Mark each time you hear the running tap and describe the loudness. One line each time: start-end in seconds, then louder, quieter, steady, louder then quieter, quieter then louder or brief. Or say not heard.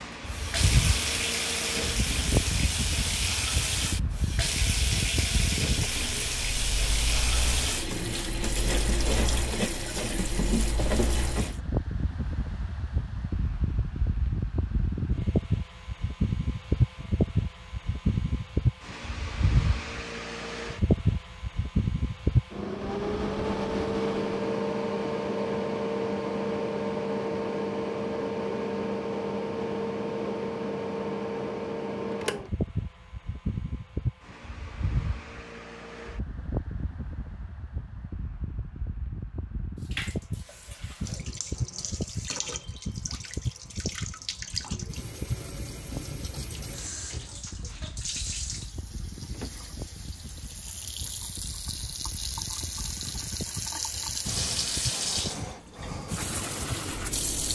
0.1-11.6 steady
39.8-57.5 louder.